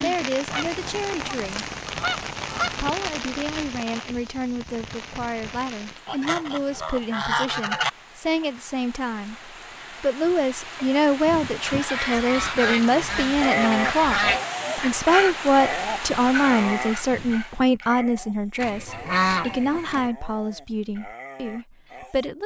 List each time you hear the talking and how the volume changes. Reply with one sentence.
You can hear the talking briefly from 0.0 to 1.6 s; and from 2.8 to 22.4 s, getting louder then quieter.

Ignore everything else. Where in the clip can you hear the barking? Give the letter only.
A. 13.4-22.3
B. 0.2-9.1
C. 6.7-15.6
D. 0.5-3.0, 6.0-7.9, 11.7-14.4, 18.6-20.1
A.